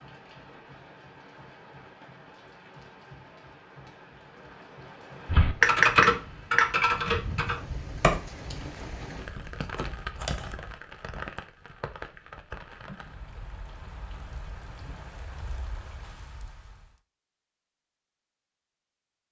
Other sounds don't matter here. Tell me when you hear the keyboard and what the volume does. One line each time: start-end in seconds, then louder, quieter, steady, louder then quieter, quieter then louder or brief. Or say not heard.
5.2-10.8 quieter then louder.